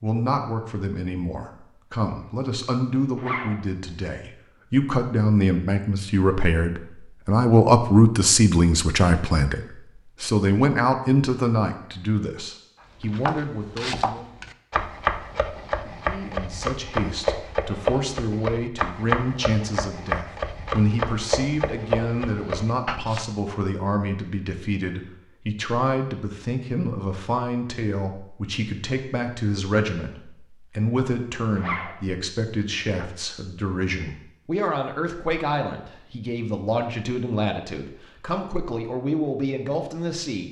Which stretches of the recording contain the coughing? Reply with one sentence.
The coughing can't be heard in this clip.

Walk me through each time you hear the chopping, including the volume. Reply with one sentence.
The chopping can be heard from 13.1 to 23.2 s, at a steady volume.